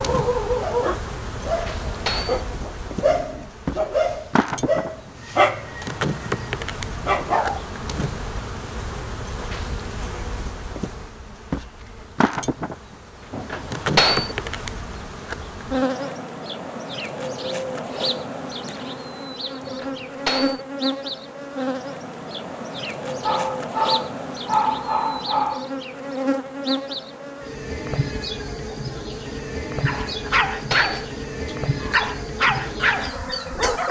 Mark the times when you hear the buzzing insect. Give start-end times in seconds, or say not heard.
0.0-33.8.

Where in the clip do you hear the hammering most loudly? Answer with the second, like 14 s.
14 s.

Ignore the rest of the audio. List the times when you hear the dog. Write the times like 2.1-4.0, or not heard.
0.0-7.6, 23.1-25.6, 29.9-33.8.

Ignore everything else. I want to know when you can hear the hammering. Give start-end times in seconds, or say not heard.
1.4-2.5, 13.3-14.3, 19.6-20.6, 30.1-31.1.